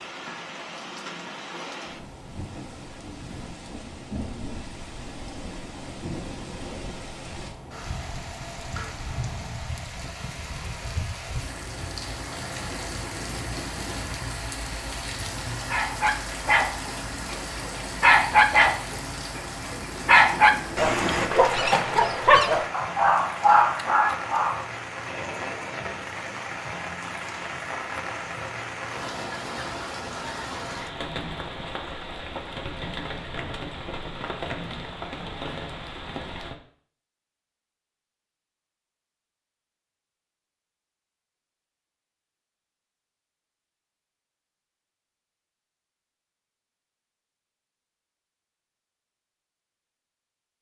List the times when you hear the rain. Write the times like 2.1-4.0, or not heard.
0.0-36.5.